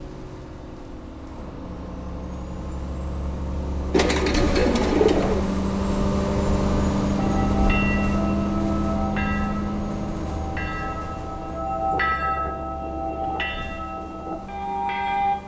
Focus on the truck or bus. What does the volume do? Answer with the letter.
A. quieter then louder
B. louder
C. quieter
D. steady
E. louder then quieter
E.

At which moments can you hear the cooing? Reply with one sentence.
You can hear the cooing from 3.9 to 5.5 s.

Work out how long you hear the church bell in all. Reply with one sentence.
The church bell can be heard for 8 seconds in total.